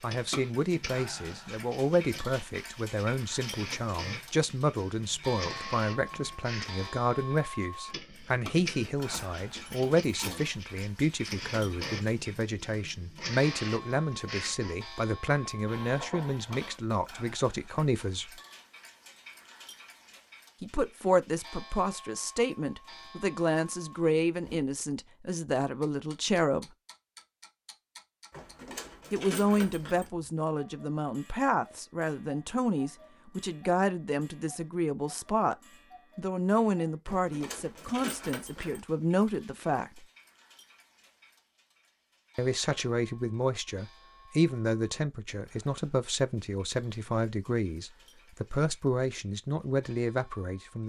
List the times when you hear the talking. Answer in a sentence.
You can hear the talking from 0.0 to 18.4 s, from 20.6 to 26.7 s, from 29.1 to 35.5 s, from 36.1 to 40.0 s and from 42.4 to 50.8 s.